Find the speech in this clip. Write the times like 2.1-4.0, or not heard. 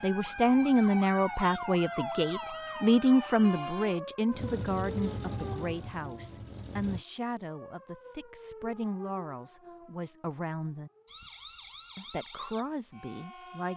0.0-10.9, 11.9-13.7.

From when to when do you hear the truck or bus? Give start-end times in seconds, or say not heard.
4.3-7.0.